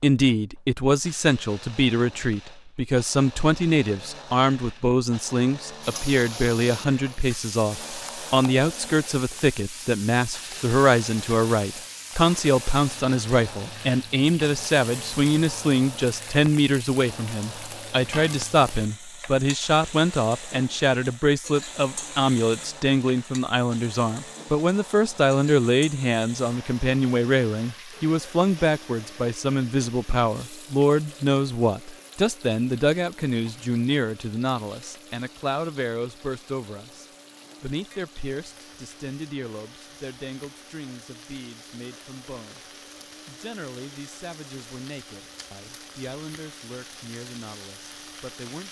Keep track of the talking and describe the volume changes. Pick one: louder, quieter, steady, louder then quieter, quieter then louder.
quieter.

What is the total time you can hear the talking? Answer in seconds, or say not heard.
48 s.